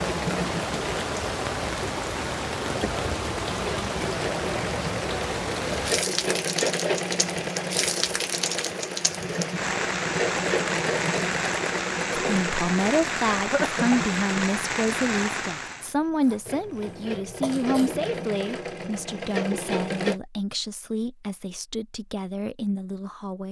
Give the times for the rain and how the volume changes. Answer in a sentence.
You can hear the rain from 0.0 to 15.9 s, at a steady volume.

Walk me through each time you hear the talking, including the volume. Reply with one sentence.
You can hear the talking from 12.2 to 23.4 s, getting quieter.